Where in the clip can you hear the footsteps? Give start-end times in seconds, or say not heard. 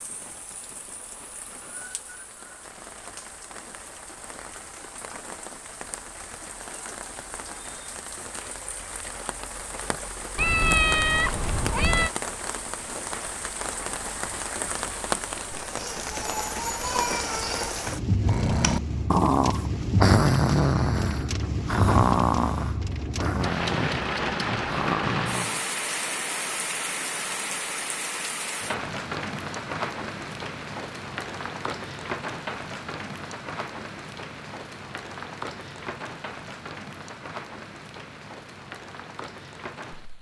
not heard.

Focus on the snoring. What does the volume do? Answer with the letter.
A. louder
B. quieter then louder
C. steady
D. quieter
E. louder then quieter
D.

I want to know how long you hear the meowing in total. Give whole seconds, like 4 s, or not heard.
2 s.